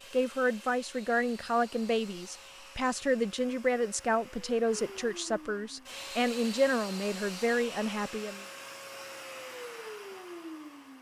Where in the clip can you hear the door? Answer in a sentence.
The door can't be heard in this clip.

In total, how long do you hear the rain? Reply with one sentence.
You can't hear the rain here.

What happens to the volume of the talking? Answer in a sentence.
The loudness of the talking stays about the same.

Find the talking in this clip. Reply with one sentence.
You can hear the talking from 0.1 to 8.4 s.